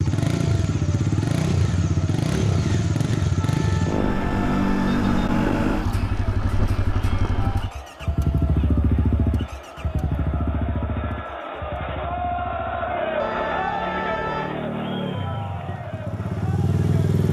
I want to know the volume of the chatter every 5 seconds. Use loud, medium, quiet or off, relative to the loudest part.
quiet, quiet, loud, medium.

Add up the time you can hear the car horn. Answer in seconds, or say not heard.
3 s.